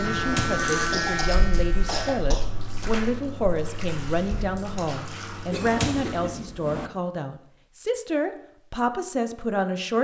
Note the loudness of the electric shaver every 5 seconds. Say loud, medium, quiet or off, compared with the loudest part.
loud, off.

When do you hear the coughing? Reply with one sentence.
The coughing can be heard from 0.9 to 2.8 s and from 5.5 to 6.3 s.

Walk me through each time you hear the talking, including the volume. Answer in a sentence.
The talking can be heard from 0.0 to 10.0 s, at a steady volume.